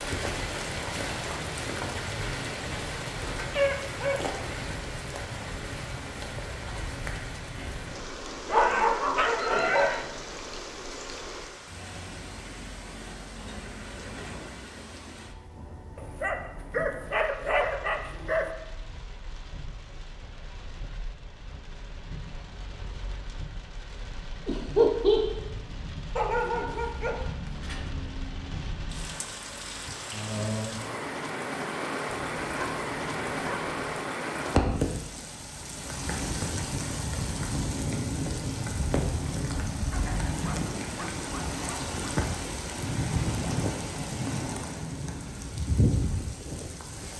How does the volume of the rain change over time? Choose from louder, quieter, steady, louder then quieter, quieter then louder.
quieter then louder.